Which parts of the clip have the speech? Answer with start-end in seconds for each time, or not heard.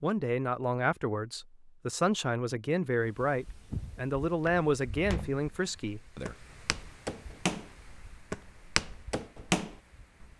0.0-6.3.